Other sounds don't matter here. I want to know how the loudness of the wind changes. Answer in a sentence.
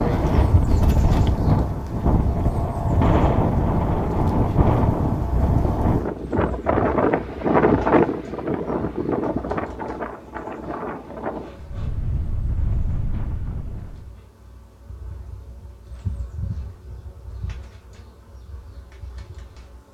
The volume of the wind goes down.